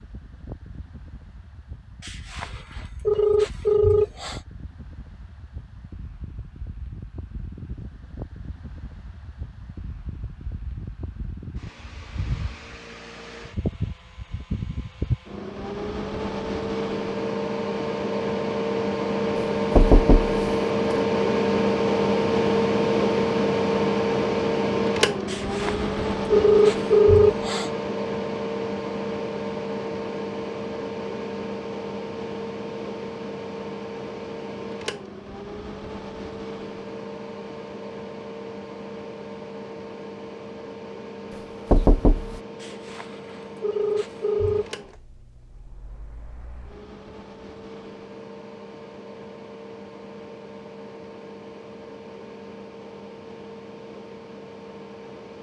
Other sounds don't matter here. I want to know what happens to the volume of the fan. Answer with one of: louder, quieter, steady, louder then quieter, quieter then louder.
louder then quieter.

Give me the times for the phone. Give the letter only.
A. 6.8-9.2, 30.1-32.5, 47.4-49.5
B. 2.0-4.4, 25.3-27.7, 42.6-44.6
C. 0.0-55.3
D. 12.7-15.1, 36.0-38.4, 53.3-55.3
B.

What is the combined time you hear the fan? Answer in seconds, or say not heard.
55 s.